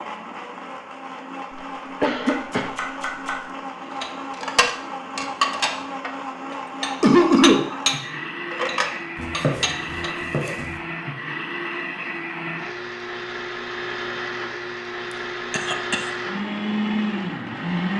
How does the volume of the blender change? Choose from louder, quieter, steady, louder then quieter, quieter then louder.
louder.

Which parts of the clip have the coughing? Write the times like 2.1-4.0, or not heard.
2.0-2.7, 7.0-7.7, 15.1-16.1.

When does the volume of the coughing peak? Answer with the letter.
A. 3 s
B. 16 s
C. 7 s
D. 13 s
C.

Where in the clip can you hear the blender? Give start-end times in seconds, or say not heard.
0.0-17.9.